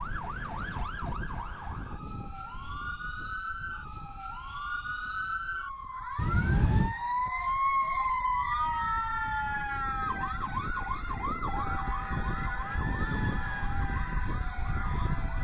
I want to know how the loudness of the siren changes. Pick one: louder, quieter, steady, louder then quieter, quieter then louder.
louder then quieter.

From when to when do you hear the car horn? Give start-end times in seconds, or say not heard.
6.2-7.0.